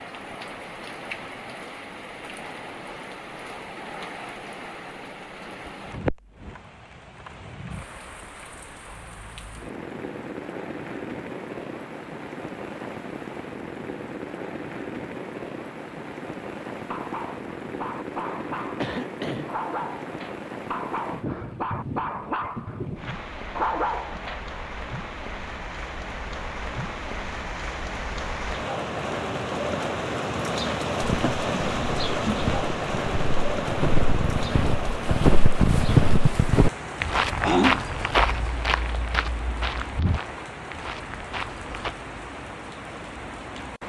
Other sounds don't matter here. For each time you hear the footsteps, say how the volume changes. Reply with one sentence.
The footsteps can be heard from 31.0 to 41.9 s, getting louder then quieter.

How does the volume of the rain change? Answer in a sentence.
The loudness of the rain goes up, then down.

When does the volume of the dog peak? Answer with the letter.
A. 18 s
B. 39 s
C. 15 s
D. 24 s
D.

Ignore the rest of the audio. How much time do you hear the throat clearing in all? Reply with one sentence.
You can hear the throat clearing for 2 seconds altogether.